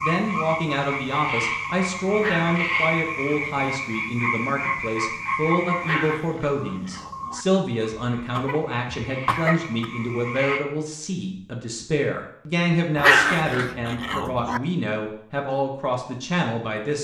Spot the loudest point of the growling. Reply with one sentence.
The volume of the growling peaks at 13 seconds.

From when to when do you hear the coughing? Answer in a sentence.
You can hear the coughing from 8.2 to 9.8 s.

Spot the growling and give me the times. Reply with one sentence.
You can hear the growling from 2.1 to 3.6 s, from 5.8 to 7.5 s and from 12.9 to 14.6 s.